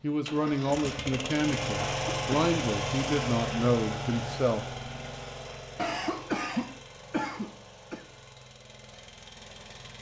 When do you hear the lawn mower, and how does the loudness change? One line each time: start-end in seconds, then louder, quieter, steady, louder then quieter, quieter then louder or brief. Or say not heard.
0.0-9.9 quieter.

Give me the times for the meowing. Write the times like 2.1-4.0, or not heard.
not heard.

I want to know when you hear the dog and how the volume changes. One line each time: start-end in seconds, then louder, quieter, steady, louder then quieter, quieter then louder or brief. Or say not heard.
not heard.